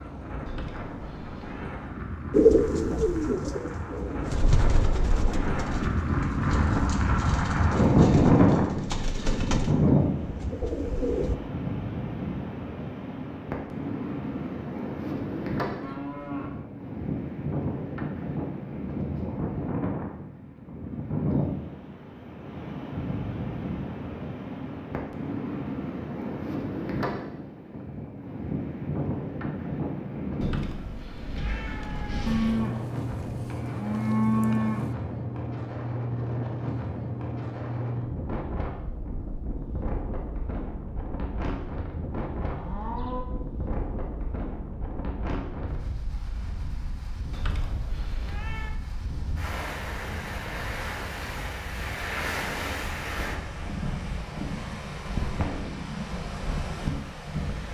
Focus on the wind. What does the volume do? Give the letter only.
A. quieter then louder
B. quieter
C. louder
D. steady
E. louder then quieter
B.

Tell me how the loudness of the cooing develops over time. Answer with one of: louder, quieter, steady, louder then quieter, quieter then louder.
quieter then louder.